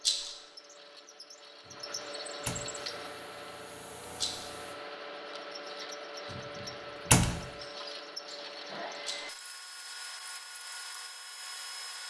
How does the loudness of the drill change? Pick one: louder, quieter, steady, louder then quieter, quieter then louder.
steady.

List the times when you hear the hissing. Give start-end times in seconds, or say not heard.
2.7-4.8.